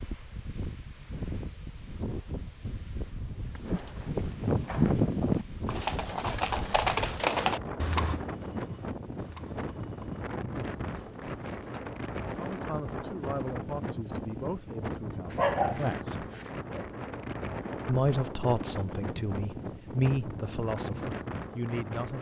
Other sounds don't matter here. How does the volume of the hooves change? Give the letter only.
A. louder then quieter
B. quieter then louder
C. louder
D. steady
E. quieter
E.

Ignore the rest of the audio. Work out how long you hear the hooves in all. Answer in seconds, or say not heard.
9 s.